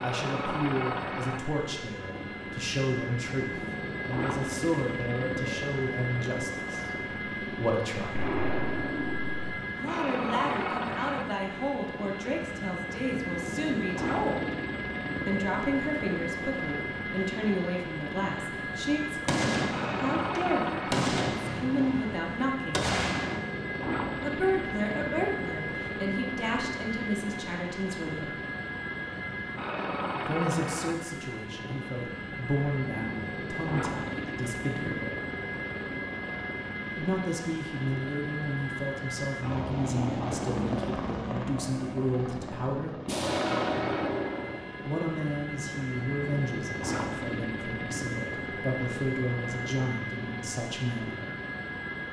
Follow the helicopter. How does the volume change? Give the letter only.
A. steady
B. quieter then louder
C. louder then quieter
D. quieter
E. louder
A.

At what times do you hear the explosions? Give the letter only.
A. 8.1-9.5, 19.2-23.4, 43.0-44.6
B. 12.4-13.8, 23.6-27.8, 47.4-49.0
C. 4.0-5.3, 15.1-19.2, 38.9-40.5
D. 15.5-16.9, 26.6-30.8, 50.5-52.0
A.